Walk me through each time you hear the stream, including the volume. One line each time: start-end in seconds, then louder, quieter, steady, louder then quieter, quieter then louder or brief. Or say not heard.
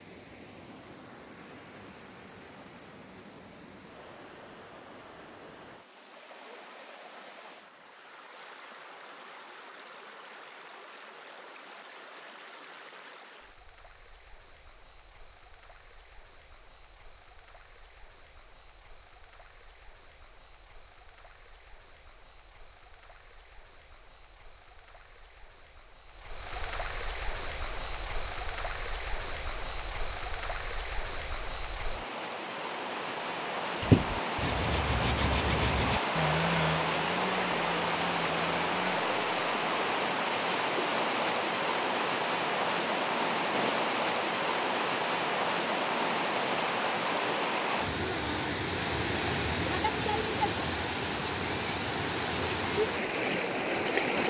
0.0-54.2 louder.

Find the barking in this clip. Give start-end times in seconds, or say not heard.
not heard.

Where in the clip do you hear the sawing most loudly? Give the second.
34 s.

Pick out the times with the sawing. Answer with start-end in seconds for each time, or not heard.
33.8-38.8.